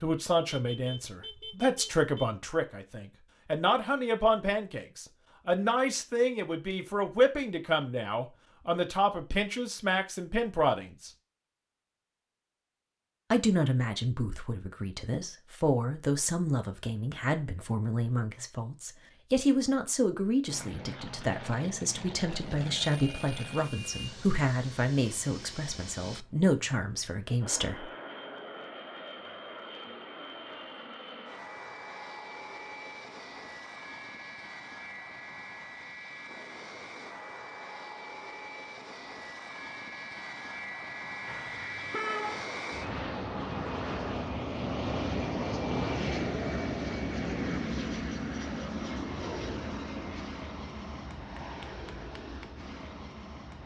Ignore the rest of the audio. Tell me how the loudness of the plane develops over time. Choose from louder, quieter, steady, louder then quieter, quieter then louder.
louder.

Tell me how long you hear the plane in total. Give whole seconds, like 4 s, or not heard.
33 s.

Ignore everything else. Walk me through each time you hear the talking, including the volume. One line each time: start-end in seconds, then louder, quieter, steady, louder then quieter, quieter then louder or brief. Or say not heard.
0.0-11.1 steady
13.3-27.9 steady.